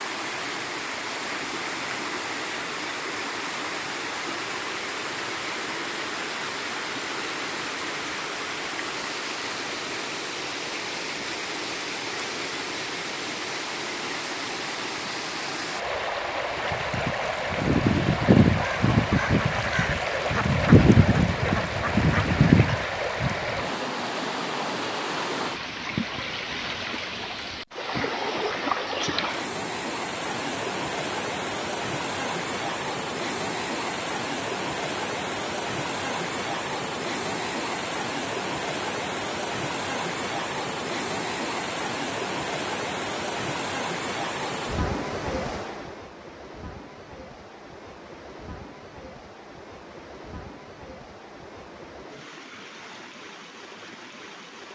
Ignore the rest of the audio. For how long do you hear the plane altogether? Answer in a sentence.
The plane can't be heard in this clip.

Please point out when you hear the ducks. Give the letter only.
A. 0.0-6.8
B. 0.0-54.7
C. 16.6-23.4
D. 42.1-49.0
C.